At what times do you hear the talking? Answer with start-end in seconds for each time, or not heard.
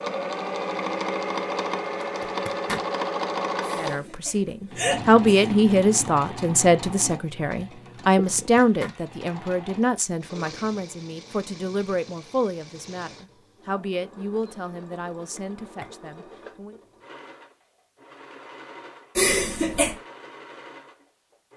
3.8-16.8.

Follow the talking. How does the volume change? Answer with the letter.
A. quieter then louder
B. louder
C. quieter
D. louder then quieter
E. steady
C.